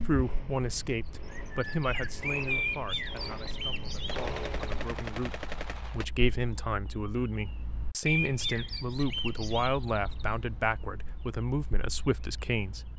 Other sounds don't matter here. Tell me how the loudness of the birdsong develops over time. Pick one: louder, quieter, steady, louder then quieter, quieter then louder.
quieter.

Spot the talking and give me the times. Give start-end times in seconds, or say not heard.
0.0-12.9.